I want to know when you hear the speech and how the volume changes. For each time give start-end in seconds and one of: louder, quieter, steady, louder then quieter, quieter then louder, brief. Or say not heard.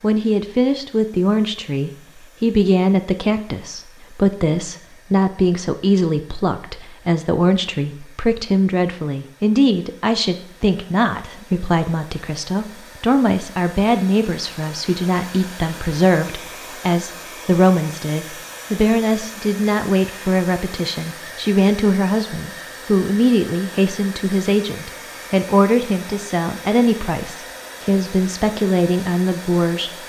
0.0-30.0 steady.